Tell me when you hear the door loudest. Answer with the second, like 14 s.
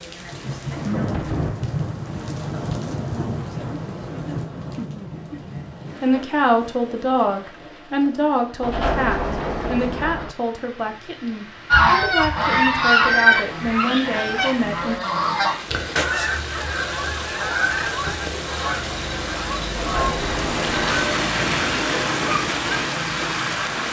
9 s.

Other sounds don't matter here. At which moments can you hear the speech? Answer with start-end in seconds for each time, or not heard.
6.0-14.9.